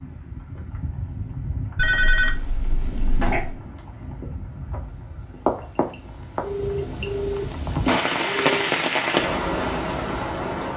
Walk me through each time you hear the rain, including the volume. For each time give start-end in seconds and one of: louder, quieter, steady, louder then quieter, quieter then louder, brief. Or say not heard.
0.0-10.7 louder.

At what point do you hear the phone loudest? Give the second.
2 s.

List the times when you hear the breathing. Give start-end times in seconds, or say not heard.
not heard.